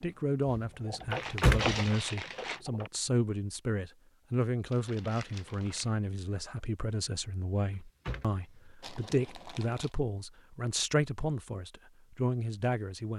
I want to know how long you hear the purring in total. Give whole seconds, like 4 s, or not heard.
not heard.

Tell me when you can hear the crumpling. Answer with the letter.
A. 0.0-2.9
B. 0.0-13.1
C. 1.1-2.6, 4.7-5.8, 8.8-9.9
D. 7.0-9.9
C.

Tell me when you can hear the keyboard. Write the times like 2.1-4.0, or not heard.
0.0-2.9.